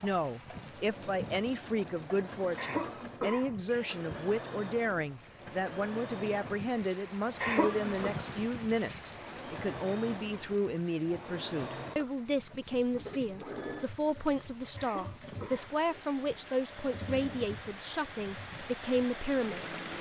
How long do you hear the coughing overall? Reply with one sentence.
You can hear the coughing for 4 seconds altogether.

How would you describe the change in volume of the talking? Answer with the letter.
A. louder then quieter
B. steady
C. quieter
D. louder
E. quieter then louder
B.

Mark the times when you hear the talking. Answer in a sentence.
The talking can be heard from 0.0 to 19.8 s.